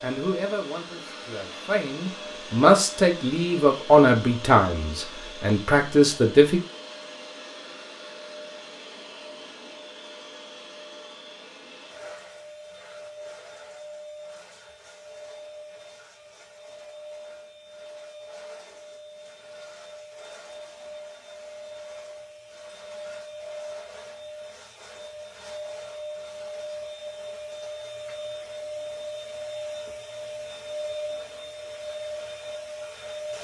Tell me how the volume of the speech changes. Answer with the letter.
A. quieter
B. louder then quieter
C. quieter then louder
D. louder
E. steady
D.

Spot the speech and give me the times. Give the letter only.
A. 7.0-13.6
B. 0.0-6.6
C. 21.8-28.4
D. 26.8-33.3
B.